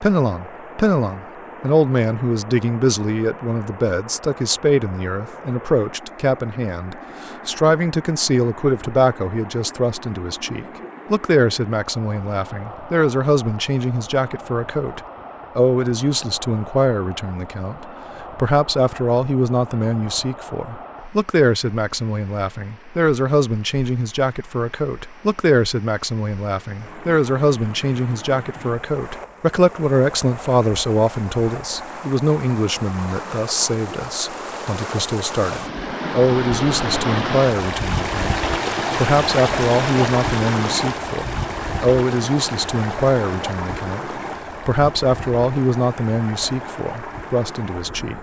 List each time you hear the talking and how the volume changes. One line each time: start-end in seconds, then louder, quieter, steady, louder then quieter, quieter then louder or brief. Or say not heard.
0.0-48.1 steady.